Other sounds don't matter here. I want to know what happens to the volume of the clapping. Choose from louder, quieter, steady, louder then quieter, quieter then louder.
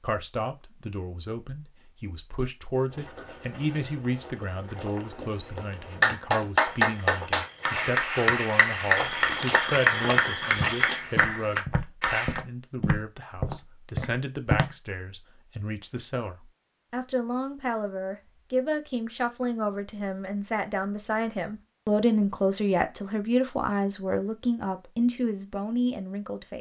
quieter.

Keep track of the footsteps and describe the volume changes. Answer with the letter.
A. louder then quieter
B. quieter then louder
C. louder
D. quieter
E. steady
C.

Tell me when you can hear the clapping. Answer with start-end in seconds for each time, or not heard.
6.0-12.4.